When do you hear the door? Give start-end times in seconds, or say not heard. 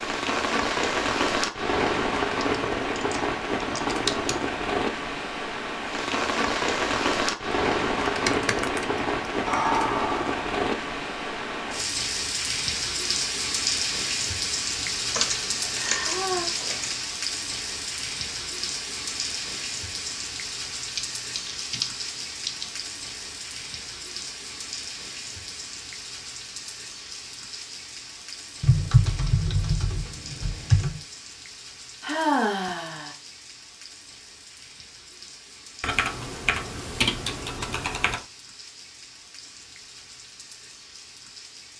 not heard.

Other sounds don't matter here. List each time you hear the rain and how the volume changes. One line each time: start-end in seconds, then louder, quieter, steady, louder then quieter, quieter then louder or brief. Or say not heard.
0.0-41.7 quieter.